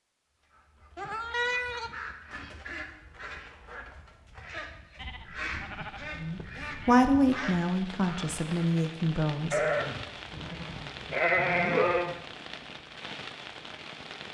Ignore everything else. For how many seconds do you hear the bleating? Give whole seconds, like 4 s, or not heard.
6 s.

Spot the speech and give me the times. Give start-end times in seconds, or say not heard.
6.2-9.6.